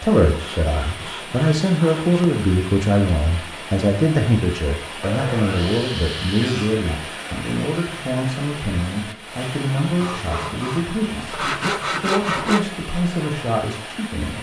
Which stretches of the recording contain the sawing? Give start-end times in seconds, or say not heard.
0.2-2.2, 5.0-6.8, 10.0-12.7.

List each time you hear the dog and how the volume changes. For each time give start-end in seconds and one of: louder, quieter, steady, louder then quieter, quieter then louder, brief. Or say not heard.
not heard.